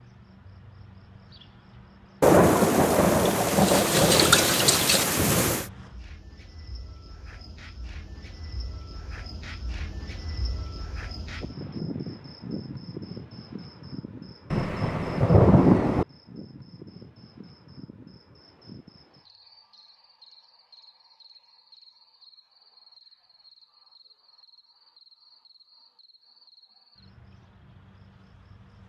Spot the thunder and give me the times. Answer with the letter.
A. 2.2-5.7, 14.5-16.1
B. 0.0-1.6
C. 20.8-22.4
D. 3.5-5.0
A.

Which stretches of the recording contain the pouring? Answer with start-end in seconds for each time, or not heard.
3.5-5.0.